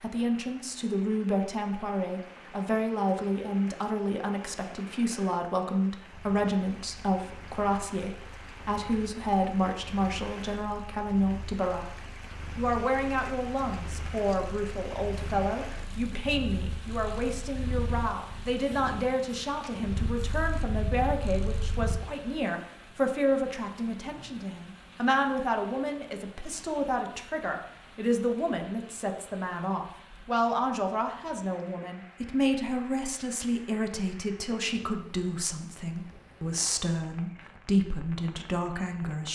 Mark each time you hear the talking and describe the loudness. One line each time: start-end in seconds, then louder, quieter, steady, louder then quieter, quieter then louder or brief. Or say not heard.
0.0-39.2 steady.